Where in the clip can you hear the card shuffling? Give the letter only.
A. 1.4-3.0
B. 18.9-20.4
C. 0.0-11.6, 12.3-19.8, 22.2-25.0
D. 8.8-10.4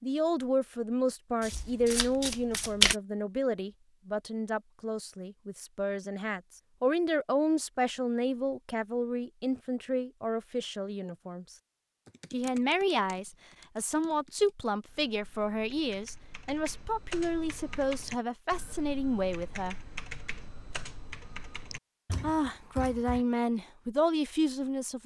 A.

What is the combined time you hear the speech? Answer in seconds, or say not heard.
22 s.